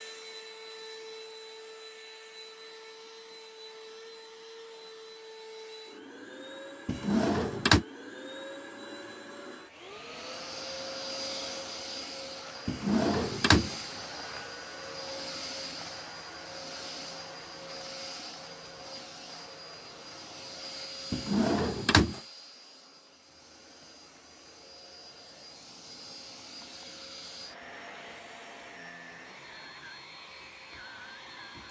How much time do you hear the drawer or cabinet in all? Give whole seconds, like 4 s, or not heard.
3 s.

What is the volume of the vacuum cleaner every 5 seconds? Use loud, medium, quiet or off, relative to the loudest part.
medium, medium, loud, loud, medium, medium, medium.